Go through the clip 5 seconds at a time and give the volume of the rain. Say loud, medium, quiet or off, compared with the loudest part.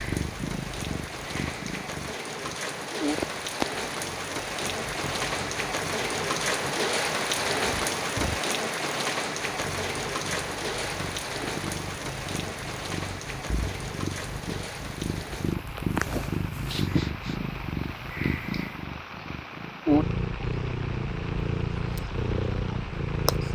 medium, loud, medium, quiet, quiet.